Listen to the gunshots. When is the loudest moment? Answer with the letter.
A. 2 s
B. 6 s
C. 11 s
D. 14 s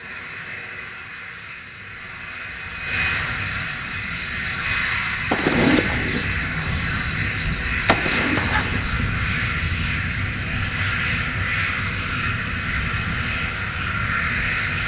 B.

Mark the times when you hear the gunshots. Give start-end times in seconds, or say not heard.
5.3-9.0.